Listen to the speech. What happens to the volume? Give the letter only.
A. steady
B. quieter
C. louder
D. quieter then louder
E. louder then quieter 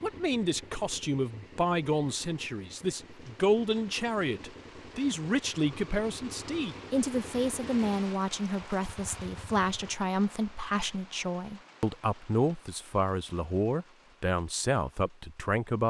A.